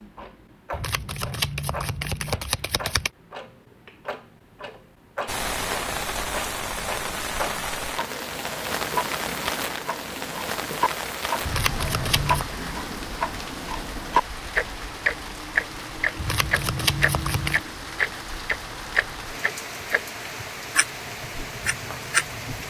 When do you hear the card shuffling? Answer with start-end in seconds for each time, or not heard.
0.7-3.1, 11.4-12.5, 16.1-17.6.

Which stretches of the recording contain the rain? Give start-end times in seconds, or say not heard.
5.2-22.6.